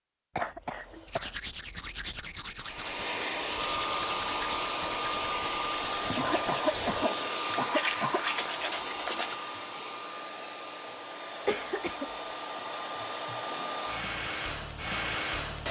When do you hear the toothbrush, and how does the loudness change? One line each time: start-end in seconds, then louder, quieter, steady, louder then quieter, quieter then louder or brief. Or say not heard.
1.1-9.3 louder.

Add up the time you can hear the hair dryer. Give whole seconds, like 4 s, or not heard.
13 s.